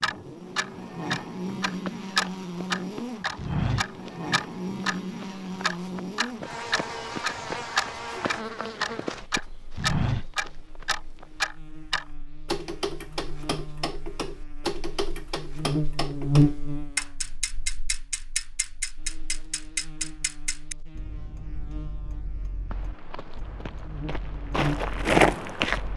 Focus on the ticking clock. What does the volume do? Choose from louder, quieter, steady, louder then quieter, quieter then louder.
quieter.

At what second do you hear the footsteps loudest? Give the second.
25 s.